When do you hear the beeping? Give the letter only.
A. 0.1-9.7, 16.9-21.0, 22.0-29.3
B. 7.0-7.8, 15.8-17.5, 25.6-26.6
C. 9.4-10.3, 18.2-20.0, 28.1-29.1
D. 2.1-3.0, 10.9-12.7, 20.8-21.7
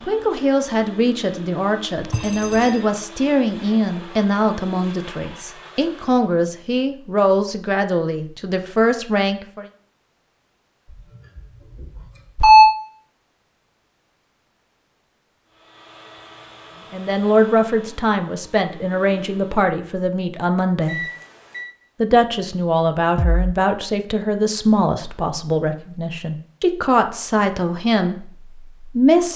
D.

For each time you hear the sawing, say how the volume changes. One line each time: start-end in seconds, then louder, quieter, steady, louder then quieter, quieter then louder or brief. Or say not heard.
not heard.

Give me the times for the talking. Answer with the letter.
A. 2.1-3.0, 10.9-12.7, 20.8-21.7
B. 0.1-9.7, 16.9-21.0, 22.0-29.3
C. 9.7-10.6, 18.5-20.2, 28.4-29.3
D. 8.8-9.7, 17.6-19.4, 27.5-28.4
B.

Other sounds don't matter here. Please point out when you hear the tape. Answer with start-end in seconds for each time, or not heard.
not heard.